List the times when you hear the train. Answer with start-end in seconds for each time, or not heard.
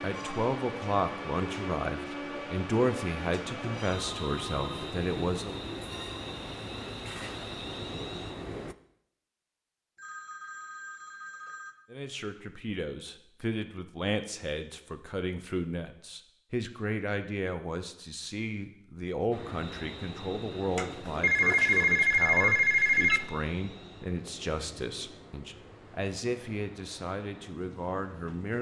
0.0-8.8, 19.3-28.5.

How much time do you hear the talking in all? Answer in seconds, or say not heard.
22 s.